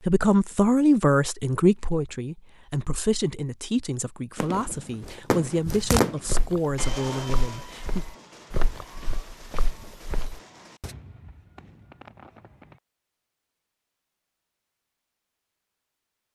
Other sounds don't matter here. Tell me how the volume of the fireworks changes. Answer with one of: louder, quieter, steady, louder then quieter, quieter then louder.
quieter.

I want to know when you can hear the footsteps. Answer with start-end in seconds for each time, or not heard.
4.5-10.9.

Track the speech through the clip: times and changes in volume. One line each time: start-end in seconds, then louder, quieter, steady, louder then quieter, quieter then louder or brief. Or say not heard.
0.1-8.1 quieter.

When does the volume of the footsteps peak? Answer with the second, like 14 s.
6 s.